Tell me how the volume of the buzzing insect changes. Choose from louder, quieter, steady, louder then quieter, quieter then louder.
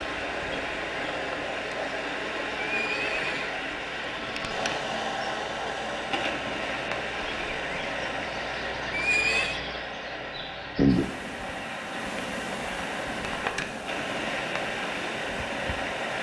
louder then quieter.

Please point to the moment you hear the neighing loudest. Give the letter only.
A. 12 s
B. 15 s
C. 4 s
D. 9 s
D.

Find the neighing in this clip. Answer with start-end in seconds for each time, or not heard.
2.6-3.5, 8.9-9.6.